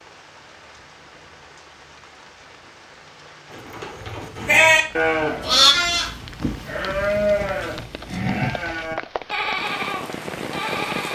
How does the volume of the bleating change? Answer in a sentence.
The loudness of the bleating goes down.